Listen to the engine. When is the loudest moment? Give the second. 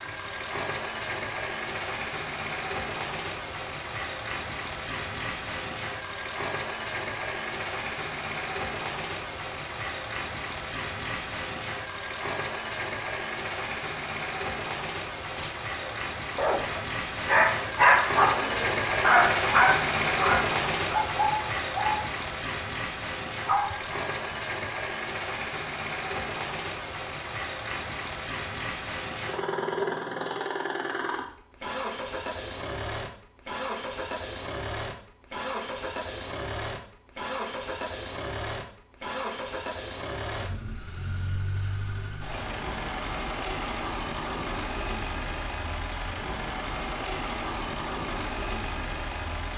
20 s.